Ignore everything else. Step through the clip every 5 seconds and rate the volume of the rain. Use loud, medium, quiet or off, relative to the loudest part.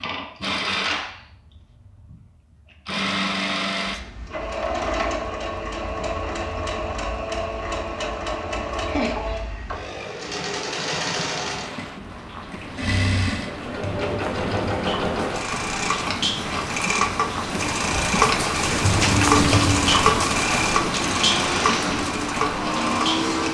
off, off, medium, loud, loud.